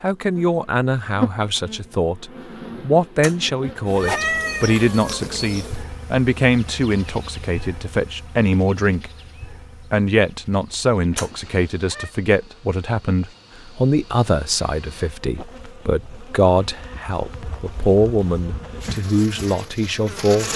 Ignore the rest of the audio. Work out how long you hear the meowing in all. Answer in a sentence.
The meowing can be heard for 3 seconds in total.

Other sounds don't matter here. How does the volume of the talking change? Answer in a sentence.
The volume of the talking stays about the same.